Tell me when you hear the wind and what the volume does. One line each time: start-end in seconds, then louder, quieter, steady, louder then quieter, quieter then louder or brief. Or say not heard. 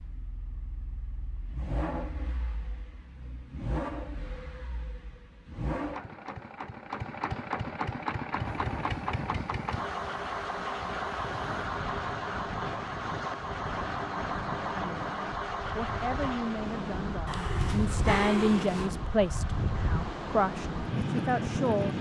8.3-21.9 louder.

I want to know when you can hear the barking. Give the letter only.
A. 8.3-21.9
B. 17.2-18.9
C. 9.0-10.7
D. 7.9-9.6
B.